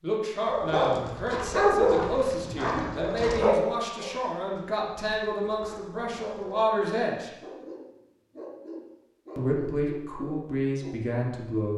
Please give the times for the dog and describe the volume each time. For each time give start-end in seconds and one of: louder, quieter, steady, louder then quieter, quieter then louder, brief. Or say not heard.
0.5-11.2 quieter.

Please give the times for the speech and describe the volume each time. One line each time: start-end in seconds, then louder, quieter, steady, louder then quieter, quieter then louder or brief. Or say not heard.
0.0-7.3 steady
9.3-11.7 brief.